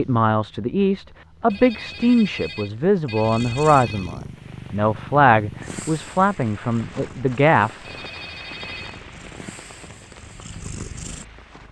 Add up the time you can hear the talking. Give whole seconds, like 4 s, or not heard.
8 s.